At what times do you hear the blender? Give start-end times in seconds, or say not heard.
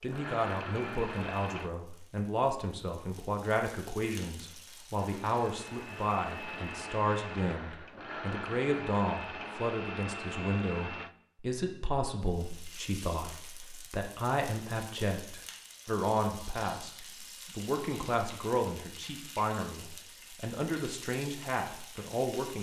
0.0-1.7, 4.9-11.2.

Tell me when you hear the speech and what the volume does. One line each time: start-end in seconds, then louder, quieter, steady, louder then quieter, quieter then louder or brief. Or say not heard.
0.0-22.5 steady.